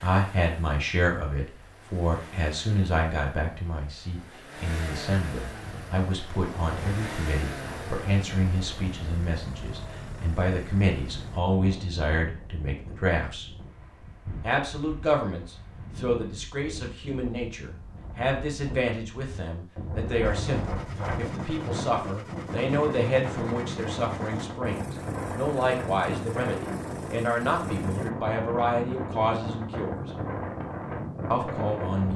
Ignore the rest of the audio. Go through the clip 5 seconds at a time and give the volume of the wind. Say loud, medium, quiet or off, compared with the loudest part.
off, medium, medium, medium, loud, loud, loud.